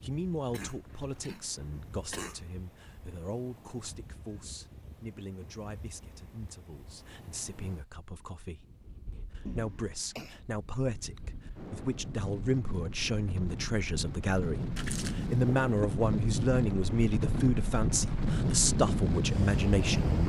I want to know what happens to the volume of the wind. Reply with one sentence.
The loudness of the wind goes up.